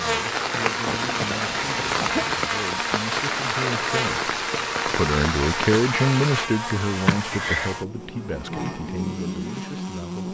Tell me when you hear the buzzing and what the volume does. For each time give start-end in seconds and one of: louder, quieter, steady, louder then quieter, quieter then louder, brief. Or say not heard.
0.0-10.2 steady.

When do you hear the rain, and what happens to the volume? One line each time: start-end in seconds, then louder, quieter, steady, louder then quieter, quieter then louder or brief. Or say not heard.
0.0-6.5 steady.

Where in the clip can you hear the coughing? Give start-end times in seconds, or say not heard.
0.8-2.4, 7.0-7.8.